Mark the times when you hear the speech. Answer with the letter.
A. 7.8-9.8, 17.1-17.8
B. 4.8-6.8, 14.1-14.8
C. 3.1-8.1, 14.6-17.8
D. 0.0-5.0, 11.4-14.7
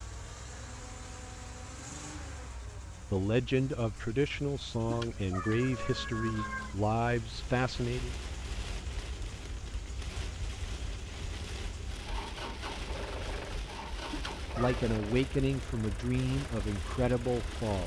C.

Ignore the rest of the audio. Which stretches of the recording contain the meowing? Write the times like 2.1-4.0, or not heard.
4.8-6.8, 14.1-14.8.